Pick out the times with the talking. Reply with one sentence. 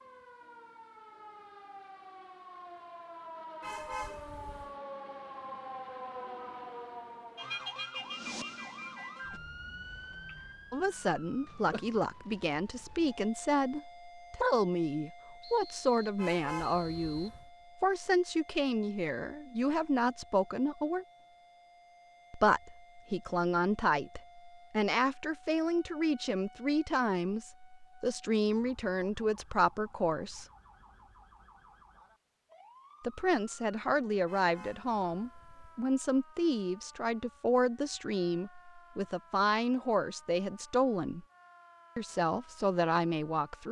The talking can be heard from 10.7 to 21.1 s, from 22.3 to 30.4 s, from 33.0 to 41.2 s and from 42.0 to 43.6 s.